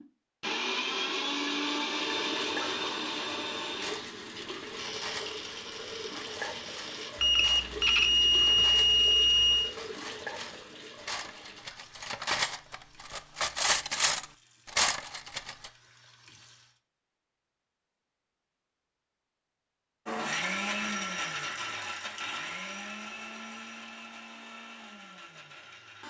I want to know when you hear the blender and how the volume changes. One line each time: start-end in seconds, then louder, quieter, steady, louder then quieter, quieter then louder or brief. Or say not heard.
0.0-7.2 quieter
20.1-26.0 quieter.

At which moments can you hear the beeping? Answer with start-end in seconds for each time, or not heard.
7.2-9.7.